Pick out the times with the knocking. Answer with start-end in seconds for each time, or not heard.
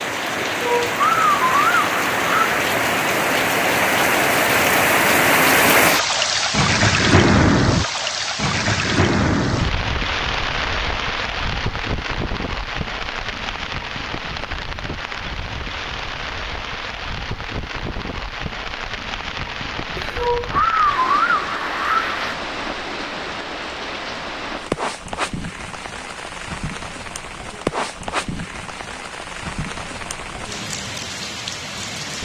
not heard.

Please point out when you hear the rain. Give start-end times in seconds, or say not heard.
0.0-32.2.